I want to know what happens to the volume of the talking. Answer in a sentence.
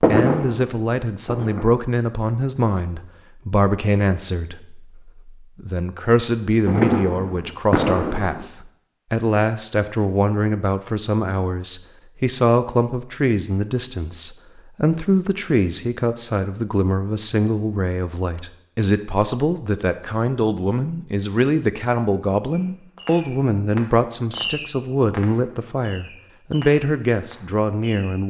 The volume of the talking stays about the same.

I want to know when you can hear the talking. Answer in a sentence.
You can hear the talking from 0.0 to 28.2 s.